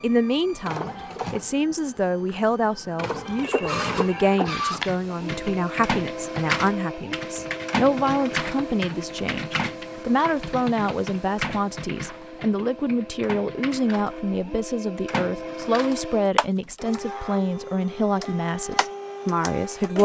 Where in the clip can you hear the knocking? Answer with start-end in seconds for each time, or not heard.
not heard.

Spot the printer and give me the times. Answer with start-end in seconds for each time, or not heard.
0.0-20.0.